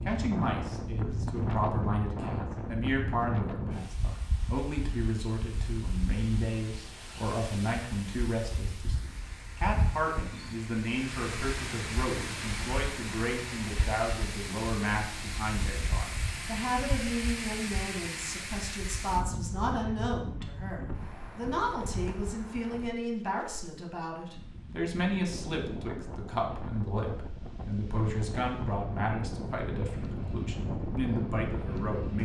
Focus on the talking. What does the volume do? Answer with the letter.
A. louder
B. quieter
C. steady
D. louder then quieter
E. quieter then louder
C.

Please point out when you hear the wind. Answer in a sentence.
You can hear the wind from 0.0 to 32.2 s.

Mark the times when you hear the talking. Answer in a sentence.
You can hear the talking from 0.0 to 32.2 s.